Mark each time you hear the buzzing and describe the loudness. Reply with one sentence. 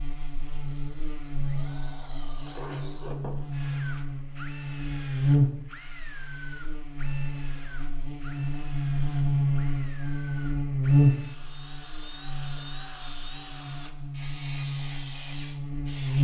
The buzzing can be heard from 0.0 to 16.1 s, getting louder then quieter.